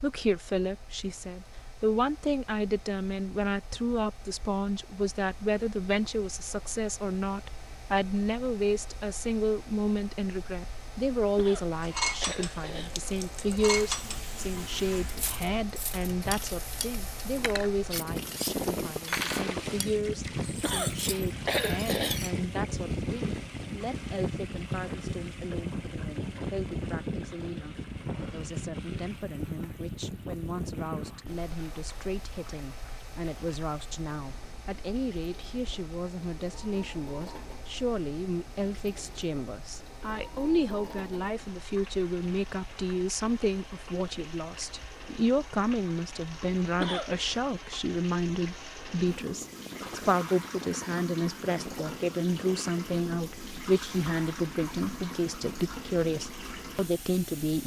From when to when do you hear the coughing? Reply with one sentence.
The coughing can be heard from 11.3 to 13.0 s, from 20.6 to 22.2 s and from 46.8 to 47.2 s.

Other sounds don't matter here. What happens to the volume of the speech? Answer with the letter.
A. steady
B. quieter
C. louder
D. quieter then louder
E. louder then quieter
D.